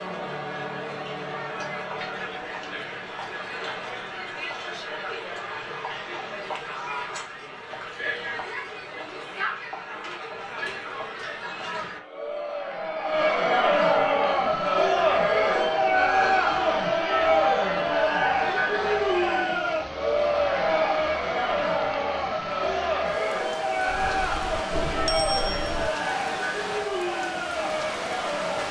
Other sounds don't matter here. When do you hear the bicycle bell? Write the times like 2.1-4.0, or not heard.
23.9-25.9.